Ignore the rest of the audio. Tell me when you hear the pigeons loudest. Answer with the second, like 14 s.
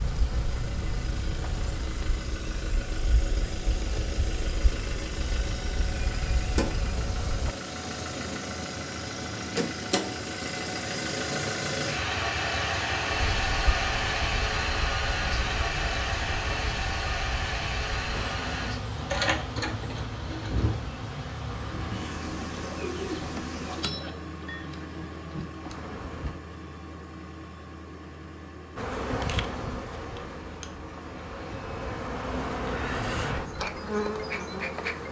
23 s.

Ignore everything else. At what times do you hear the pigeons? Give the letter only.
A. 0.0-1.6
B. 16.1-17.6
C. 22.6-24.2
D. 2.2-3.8
C.